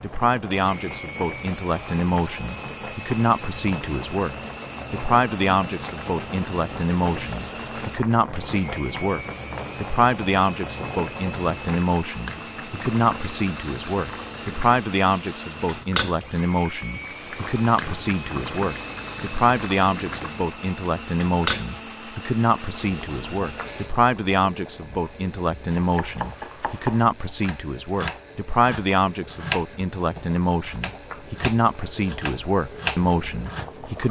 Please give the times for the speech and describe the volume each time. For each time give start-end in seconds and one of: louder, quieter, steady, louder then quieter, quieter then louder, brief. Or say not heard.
0.0-34.0 steady.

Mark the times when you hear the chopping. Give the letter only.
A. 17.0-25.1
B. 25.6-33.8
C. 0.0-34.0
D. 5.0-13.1
B.